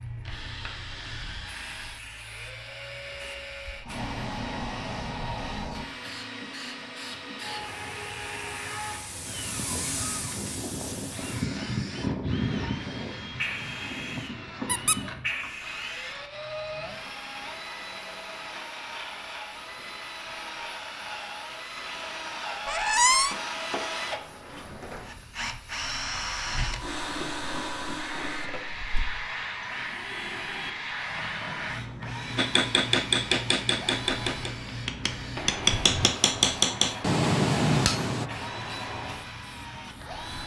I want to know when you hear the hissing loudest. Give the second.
12 s.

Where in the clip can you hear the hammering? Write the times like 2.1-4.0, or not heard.
32.4-38.3.